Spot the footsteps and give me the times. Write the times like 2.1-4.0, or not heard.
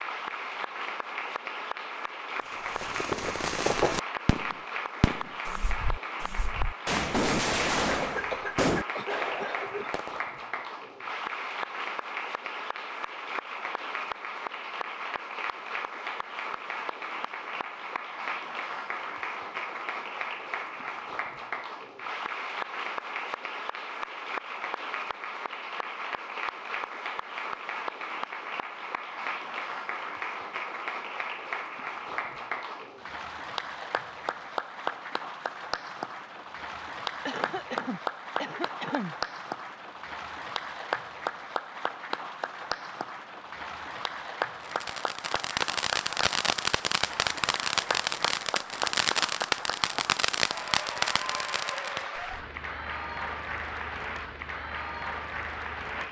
not heard.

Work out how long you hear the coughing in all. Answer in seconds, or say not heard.
4 s.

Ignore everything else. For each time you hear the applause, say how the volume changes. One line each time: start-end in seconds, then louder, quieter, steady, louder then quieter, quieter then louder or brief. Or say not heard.
0.0-56.0 steady.